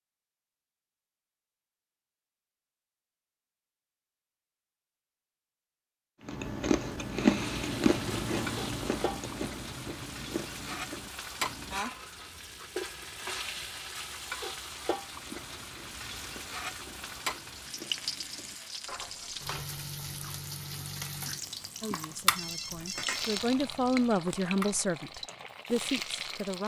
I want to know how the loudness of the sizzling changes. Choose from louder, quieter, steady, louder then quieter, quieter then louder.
steady.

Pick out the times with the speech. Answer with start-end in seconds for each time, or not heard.
21.8-26.6.